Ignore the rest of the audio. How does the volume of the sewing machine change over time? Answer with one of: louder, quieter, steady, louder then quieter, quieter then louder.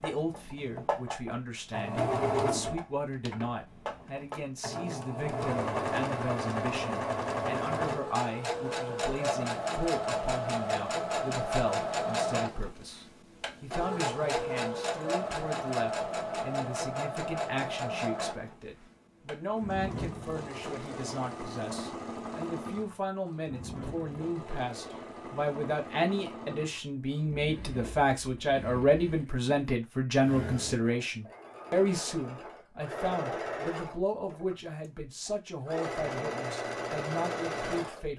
quieter then louder.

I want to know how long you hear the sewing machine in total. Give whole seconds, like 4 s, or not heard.
38 s.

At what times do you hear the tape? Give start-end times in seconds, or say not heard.
not heard.